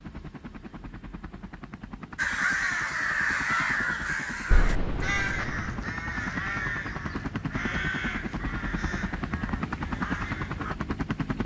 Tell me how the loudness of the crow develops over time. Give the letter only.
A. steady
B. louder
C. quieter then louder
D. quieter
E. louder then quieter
D.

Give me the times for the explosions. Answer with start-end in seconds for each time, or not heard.
4.5-5.7.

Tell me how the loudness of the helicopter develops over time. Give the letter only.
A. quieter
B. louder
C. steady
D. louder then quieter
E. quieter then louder
B.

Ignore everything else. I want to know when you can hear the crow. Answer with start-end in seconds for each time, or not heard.
2.1-10.8.